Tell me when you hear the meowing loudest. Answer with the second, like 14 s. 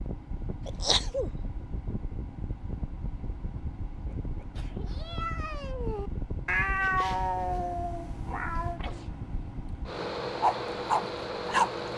7 s.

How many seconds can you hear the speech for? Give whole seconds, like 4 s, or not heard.
not heard.